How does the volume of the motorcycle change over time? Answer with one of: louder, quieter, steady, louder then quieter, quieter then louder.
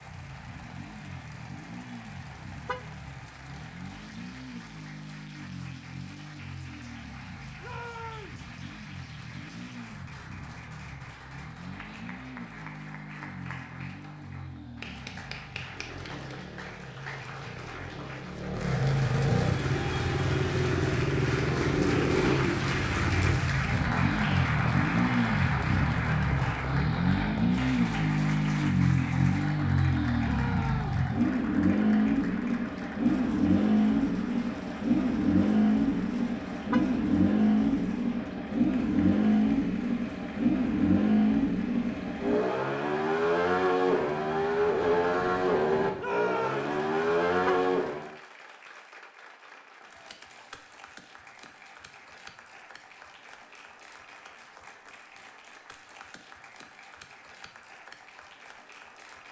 louder.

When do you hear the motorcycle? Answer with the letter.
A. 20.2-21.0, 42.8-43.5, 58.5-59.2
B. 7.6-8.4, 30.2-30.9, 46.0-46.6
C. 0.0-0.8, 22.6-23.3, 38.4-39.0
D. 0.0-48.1
D.